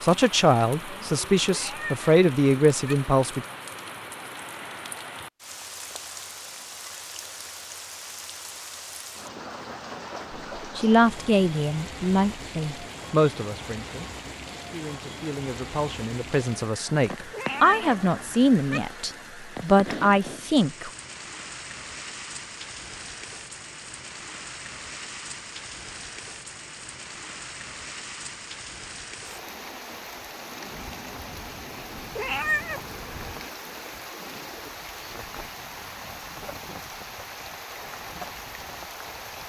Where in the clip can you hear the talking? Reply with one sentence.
The talking can be heard from 0.0 to 3.5 s and from 10.6 to 20.9 s.